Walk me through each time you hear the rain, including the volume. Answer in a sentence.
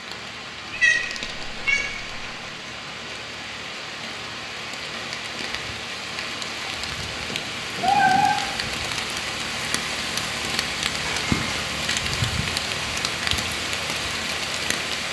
The rain can be heard from 0.0 to 15.0 s, getting louder.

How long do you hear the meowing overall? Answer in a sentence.
The meowing can be heard for 3 seconds in total.